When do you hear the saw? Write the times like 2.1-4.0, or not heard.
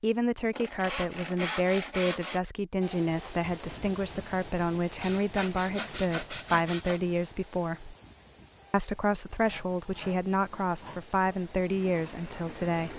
0.5-2.4, 5.0-7.0, 9.4-11.0.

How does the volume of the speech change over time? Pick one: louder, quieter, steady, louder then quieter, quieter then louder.
steady.